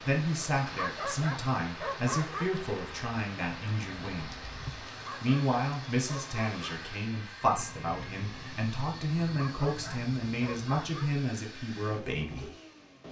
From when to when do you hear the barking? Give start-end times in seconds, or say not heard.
0.6-2.5, 4.8-6.7, 9.2-11.1.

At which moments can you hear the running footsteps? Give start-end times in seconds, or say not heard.
not heard.